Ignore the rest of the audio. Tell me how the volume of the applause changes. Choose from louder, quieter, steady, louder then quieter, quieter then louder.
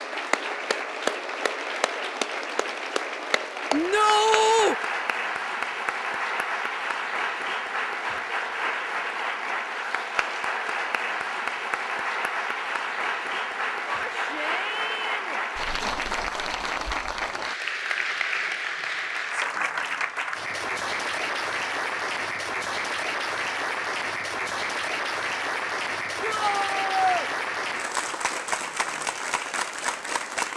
steady.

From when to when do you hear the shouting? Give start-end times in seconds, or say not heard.
3.7-4.8, 13.9-15.4, 26.2-27.3.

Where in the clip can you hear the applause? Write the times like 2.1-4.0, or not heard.
0.0-30.5.